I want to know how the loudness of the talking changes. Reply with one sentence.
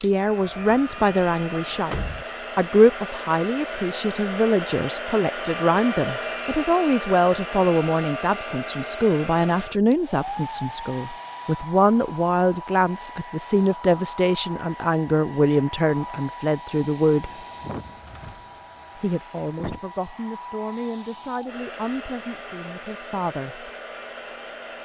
The volume of the talking goes down.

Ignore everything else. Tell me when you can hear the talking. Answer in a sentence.
The talking can be heard from 0.0 to 17.4 s and from 18.9 to 23.7 s.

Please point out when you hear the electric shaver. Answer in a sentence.
You can't hear the electric shaver here.